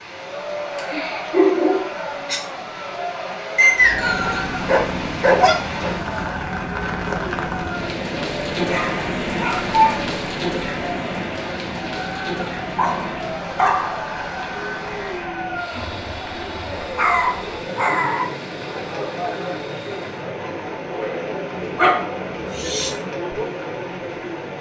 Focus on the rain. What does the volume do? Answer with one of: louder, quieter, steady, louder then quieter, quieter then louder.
louder then quieter.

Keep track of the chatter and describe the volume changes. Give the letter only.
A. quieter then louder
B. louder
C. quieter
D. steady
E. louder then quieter
D.